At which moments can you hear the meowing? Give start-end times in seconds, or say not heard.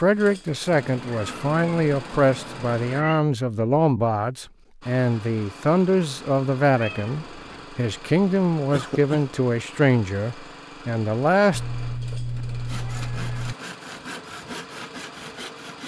0.7-3.2, 6.8-7.7, 11.5-13.6.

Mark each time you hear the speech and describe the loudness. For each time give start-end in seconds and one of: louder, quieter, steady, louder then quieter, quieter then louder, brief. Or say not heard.
0.0-11.6 steady.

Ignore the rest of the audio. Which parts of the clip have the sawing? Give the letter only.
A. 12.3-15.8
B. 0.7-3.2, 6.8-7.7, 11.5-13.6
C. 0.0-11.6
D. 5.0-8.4
A.